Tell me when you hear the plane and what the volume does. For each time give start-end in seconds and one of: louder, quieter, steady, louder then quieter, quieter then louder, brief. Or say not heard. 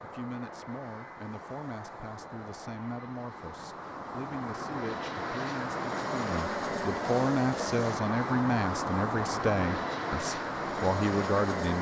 0.0-11.7 louder.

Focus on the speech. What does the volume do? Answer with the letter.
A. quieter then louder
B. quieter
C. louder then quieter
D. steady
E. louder
E.